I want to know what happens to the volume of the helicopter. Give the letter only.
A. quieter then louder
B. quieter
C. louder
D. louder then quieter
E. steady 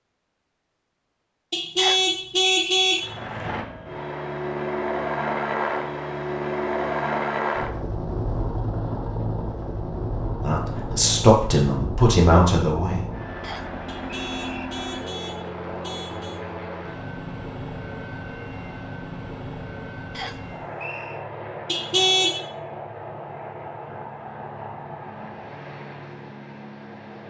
B.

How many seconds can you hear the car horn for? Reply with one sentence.
You can hear the car horn for 5 seconds altogether.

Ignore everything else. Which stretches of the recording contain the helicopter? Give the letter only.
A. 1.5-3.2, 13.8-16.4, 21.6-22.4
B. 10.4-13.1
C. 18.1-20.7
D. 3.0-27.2
D.